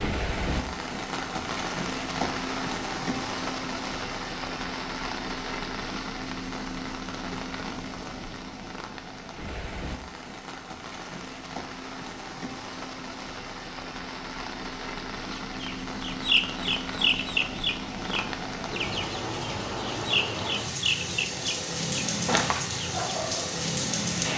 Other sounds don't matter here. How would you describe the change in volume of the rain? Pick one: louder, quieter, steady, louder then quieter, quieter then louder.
quieter then louder.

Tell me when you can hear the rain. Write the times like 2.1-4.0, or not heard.
0.0-24.3.